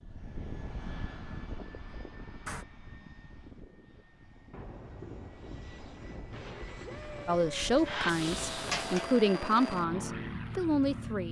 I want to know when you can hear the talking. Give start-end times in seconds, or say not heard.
7.2-11.2.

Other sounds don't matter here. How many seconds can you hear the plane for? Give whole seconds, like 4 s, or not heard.
11 s.